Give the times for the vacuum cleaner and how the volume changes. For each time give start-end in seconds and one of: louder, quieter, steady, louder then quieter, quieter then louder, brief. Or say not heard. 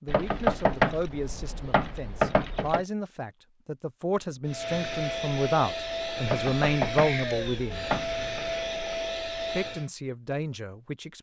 4.5-9.9 steady.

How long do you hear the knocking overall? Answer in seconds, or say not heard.
5 s.